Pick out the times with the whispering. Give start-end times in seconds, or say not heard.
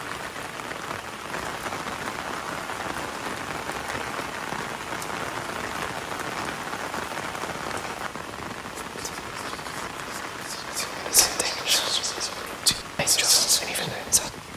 8.8-14.3.